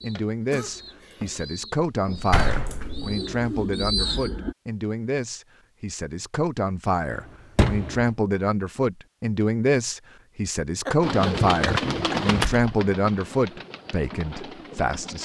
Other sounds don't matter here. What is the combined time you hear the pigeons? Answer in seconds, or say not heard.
9 s.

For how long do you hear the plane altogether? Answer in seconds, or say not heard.
not heard.